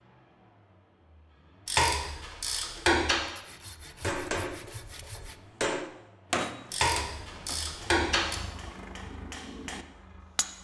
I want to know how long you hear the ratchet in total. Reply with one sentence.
You can hear the ratchet for 3 seconds altogether.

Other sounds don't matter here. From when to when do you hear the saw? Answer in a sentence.
The saw can be heard from 3.4 to 5.4 s.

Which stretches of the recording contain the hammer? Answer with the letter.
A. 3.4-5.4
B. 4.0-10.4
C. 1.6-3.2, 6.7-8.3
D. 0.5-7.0
B.